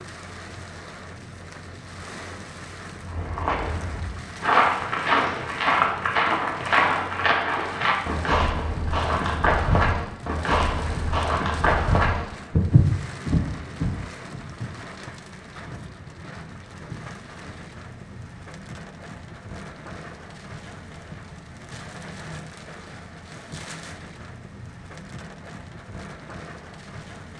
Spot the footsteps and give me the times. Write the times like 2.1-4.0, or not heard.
3.0-14.7.